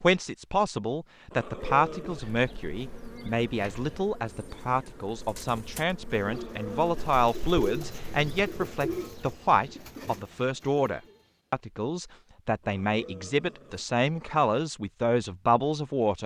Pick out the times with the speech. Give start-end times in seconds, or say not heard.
0.0-16.2.